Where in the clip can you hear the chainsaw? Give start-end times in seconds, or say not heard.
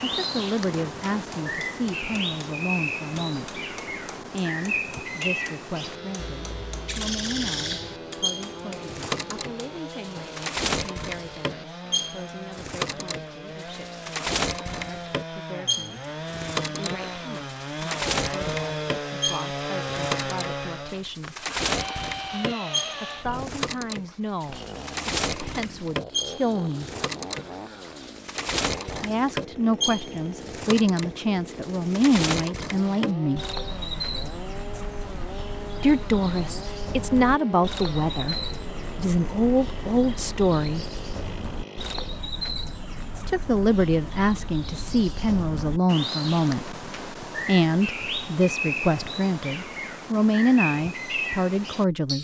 5.8-42.2.